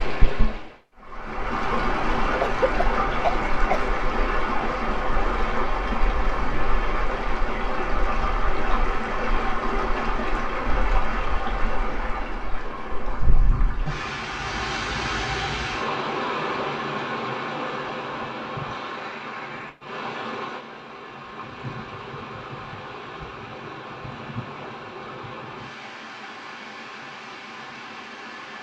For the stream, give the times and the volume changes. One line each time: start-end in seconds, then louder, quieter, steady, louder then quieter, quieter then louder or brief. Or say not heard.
0.0-28.5 quieter.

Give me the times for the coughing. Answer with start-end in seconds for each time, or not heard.
2.4-3.9.